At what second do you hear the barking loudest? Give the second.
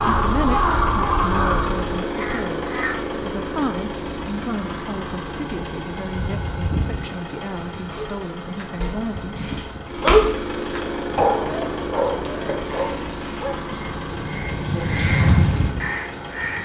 10 s.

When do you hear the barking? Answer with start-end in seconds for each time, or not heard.
7.9-13.8.